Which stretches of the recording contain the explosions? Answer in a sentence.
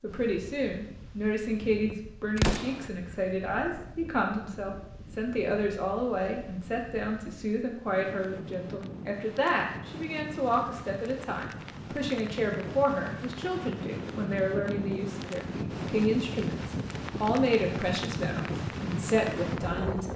The explosions can be heard from 2.4 to 2.9 s.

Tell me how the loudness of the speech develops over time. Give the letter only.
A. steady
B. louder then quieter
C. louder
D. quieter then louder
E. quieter
A.